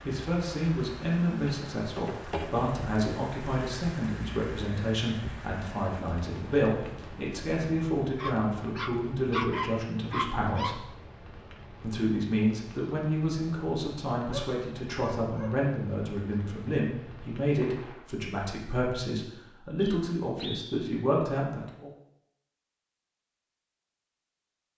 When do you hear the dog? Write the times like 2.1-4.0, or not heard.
8.2-10.8, 14.2-15.6.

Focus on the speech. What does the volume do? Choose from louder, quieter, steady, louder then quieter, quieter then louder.
steady.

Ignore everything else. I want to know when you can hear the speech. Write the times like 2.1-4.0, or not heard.
0.1-10.8, 11.8-21.9.